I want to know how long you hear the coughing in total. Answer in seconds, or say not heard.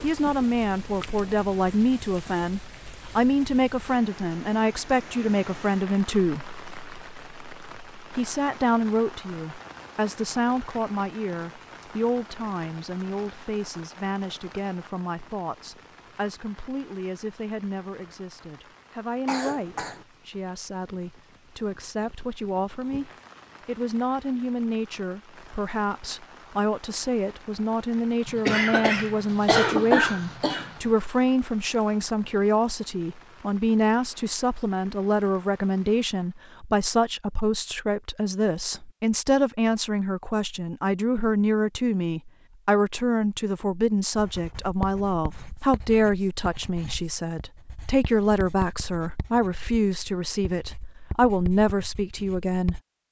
3 s.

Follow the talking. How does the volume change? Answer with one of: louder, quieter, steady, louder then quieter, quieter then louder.
quieter then louder.